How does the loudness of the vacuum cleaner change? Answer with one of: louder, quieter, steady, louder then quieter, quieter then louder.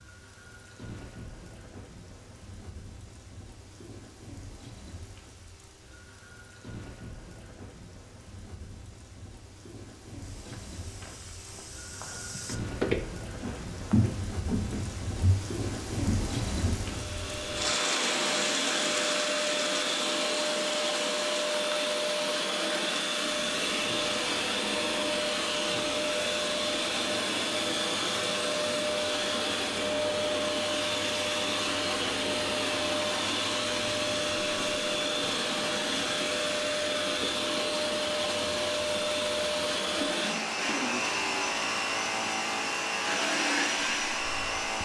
steady.